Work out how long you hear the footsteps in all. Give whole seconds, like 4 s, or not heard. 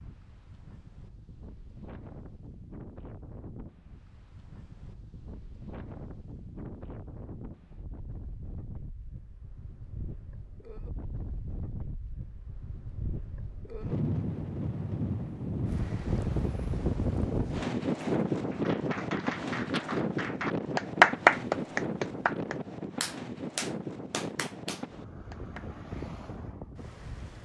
not heard.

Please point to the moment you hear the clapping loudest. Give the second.
21 s.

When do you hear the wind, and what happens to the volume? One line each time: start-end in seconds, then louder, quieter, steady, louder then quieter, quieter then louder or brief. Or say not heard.
0.0-27.4 louder then quieter.